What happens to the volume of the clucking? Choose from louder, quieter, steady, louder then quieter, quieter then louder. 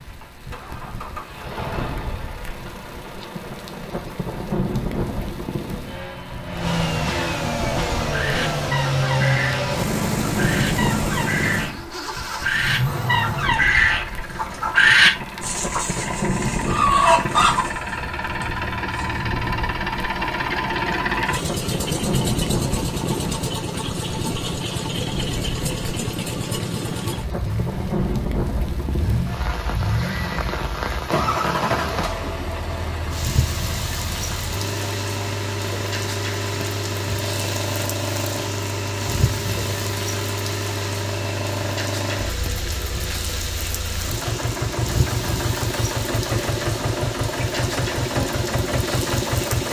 louder.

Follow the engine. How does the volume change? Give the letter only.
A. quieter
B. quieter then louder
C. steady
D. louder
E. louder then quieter
C.